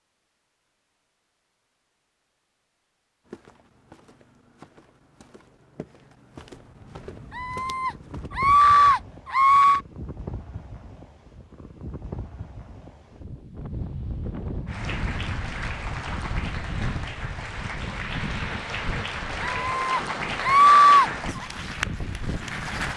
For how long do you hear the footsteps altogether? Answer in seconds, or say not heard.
5 s.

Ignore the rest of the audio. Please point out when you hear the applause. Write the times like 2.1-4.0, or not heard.
14.7-22.9.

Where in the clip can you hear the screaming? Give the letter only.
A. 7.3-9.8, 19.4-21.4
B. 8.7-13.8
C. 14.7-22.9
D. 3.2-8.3
A.